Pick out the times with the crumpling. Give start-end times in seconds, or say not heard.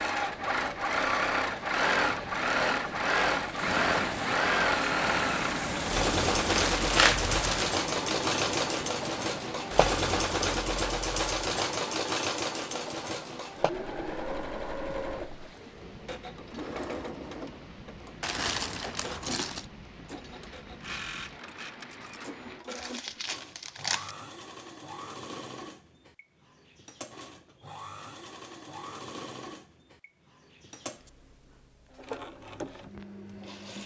6.5-7.8, 18.2-19.6, 22.7-24.1.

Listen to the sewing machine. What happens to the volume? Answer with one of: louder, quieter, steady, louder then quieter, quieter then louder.
quieter.